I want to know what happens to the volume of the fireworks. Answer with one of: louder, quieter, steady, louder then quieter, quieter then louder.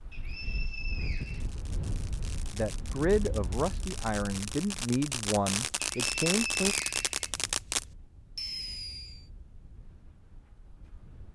louder.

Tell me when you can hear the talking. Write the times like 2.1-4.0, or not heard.
2.5-6.8.